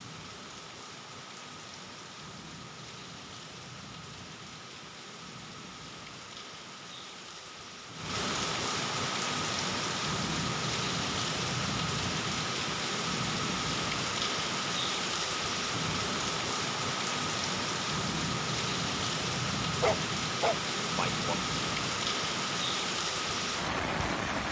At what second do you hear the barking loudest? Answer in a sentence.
The loudest moment of the barking is at 20 seconds.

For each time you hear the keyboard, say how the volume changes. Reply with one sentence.
The keyboard can't be heard in this clip.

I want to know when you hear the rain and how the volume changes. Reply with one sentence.
The rain can be heard from 0.0 to 24.4 s, getting louder.